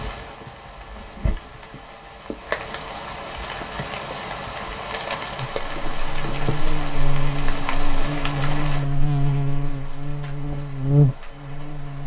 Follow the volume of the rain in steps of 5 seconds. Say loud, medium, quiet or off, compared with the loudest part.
loud, loud, quiet.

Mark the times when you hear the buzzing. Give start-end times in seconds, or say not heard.
5.5-12.0.